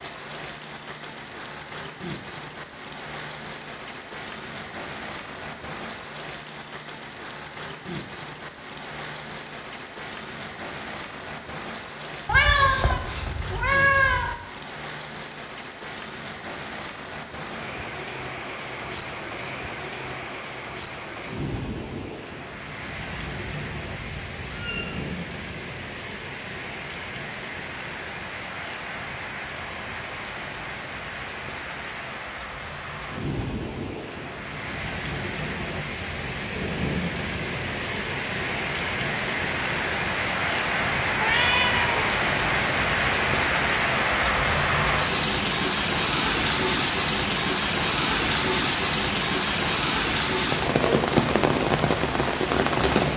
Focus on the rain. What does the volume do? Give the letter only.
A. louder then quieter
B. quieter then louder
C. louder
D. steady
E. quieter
C.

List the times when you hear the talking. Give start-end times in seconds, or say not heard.
not heard.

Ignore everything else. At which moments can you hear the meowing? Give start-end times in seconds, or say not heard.
12.2-14.3, 23.1-24.9, 41.1-42.0.